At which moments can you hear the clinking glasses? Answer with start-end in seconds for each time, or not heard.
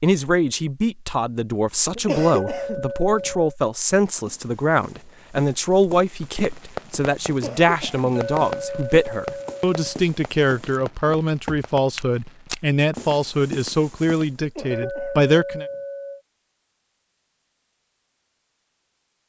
2.4-3.5, 8.2-10.0, 14.7-16.2.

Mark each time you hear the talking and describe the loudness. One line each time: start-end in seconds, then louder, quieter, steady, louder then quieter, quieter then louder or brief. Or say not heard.
0.0-15.7 steady.